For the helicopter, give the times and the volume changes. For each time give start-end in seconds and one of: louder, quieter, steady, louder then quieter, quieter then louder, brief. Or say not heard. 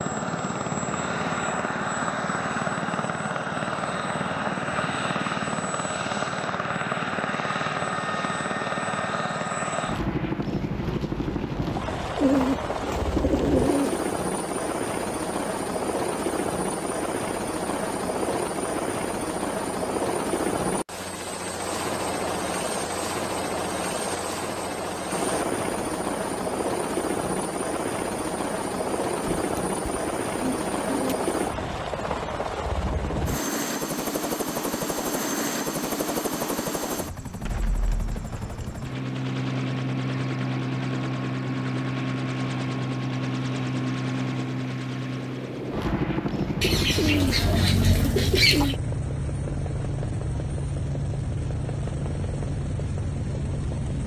0.0-54.0 steady.